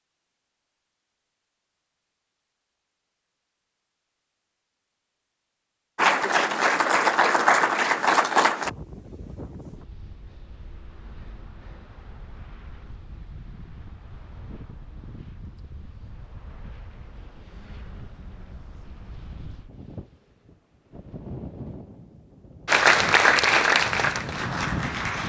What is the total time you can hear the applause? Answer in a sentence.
You can hear the applause for 5 seconds altogether.